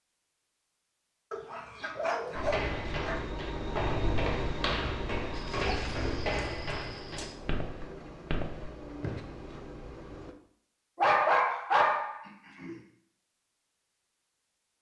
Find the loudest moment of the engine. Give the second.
4 s.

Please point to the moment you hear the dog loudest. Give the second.
11 s.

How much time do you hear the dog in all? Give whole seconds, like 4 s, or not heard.
6 s.